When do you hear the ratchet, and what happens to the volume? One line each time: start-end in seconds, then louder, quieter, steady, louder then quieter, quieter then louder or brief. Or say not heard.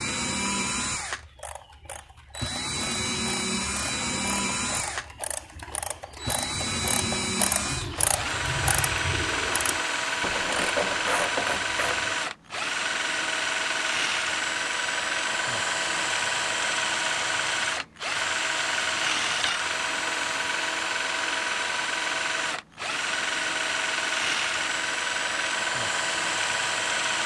1.3-12.2 louder.